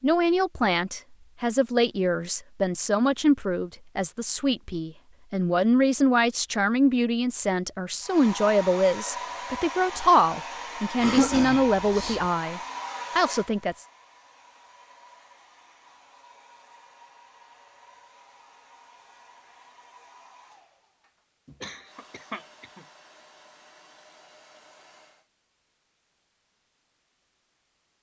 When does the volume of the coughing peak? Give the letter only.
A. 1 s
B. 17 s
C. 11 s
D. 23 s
C.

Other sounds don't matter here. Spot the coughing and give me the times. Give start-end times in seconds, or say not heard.
11.0-12.2, 21.6-22.9.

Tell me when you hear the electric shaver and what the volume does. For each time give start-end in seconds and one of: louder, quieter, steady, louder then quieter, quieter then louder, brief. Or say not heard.
not heard.